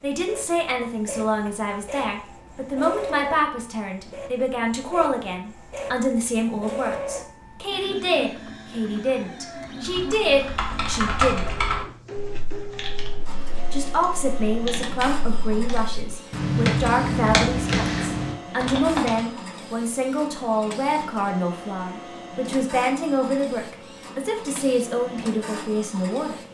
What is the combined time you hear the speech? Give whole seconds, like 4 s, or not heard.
24 s.